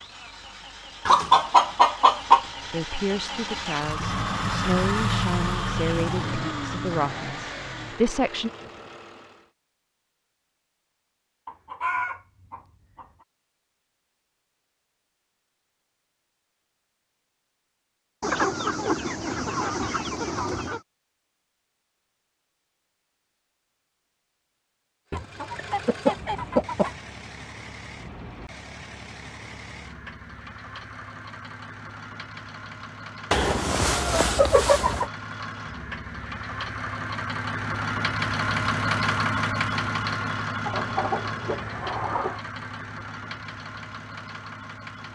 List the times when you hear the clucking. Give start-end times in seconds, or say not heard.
1.1-2.5, 11.4-13.1, 18.2-20.8, 25.1-26.9, 33.3-35.1, 40.6-42.4.